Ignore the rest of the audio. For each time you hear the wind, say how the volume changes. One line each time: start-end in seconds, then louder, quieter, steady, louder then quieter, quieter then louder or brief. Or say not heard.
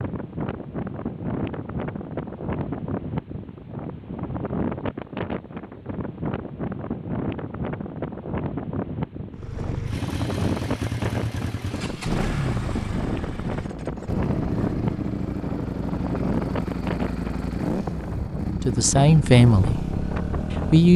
0.0-20.9 steady.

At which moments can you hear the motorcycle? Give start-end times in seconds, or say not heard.
9.3-20.9.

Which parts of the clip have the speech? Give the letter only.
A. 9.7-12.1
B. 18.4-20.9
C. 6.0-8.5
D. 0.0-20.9
B.